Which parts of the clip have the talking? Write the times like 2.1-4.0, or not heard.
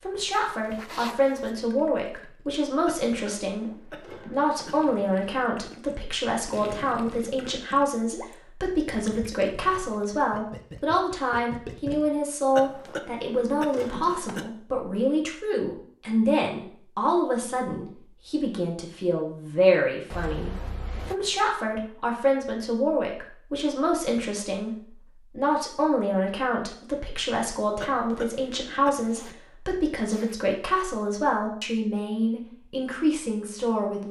0.0-34.0.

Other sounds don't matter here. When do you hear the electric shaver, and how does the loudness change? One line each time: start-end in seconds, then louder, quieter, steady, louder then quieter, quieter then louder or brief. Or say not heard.
not heard.